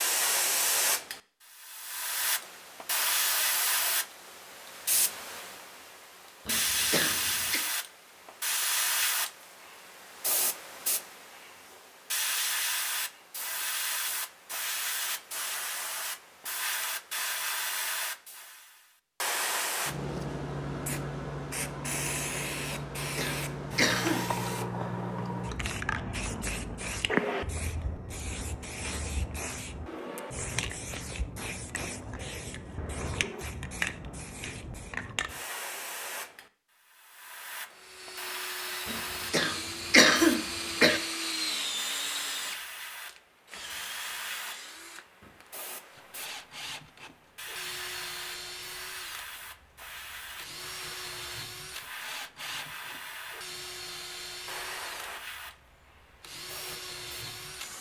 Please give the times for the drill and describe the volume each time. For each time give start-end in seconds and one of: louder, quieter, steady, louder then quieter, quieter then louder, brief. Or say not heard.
37.7-57.7 quieter.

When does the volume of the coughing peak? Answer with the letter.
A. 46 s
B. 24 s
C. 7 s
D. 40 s
D.